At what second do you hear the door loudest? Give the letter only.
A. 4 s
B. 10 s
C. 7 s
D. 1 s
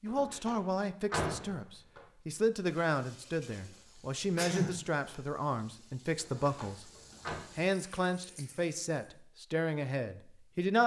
D.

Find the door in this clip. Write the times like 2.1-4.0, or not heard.
0.1-2.0, 6.2-7.4.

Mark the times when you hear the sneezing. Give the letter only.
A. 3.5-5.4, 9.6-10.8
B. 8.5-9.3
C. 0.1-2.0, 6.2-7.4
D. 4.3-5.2
D.